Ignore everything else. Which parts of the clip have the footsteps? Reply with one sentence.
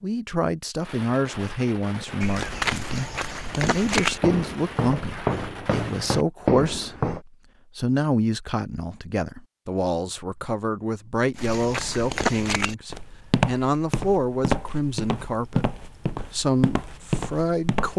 The footsteps can be heard from 2.2 to 7.2 s and from 11.3 to 17.9 s.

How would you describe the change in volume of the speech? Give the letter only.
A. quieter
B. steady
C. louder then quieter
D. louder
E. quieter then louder
B.